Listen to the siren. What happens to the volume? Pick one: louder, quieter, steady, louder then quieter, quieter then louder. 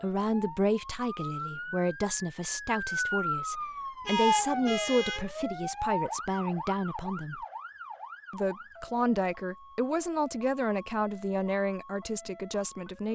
louder then quieter.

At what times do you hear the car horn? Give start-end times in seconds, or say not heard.
4.0-5.3.